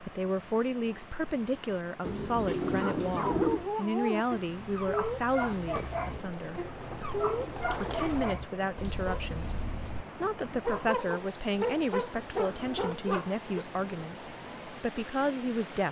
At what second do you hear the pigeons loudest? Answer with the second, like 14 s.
3 s.